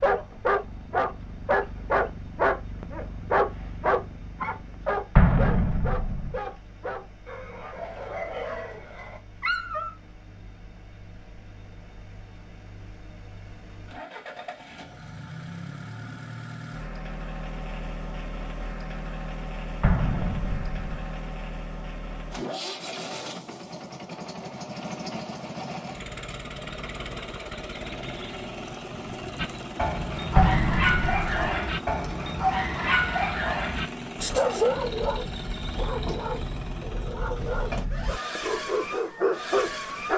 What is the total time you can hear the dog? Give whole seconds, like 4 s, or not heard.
21 s.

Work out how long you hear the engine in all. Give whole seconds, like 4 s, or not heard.
40 s.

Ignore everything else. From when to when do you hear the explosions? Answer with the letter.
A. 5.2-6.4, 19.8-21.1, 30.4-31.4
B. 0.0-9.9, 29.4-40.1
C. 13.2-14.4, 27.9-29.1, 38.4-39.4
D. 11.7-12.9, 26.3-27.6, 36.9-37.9
A.